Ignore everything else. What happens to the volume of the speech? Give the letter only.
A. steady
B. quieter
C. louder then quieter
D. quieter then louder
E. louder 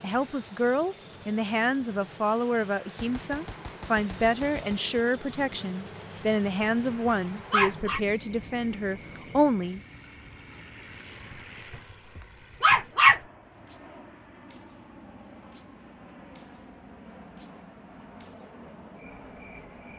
A.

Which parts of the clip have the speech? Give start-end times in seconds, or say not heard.
0.0-9.8.